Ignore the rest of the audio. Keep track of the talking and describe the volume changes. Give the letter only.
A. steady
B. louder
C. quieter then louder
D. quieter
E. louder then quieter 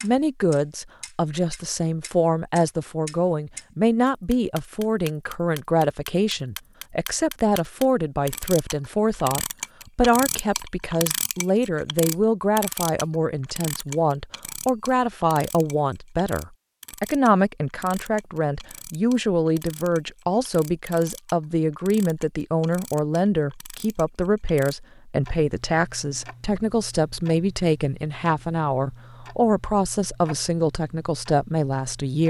A.